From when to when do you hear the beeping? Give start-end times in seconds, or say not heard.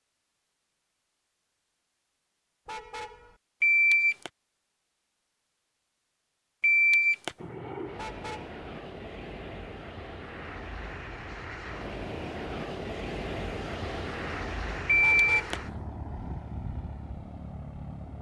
3.6-4.3, 6.6-7.3, 14.8-15.6.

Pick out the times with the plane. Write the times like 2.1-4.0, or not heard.
7.3-18.1.